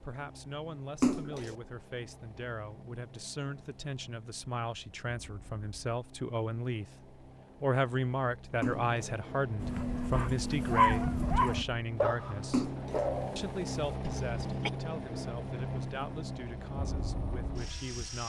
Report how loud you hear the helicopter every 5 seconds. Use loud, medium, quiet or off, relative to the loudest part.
quiet, medium, loud, loud.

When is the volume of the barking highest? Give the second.
11 s.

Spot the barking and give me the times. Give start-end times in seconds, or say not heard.
9.6-14.7.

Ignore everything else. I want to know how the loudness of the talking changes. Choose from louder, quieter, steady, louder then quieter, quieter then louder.
louder then quieter.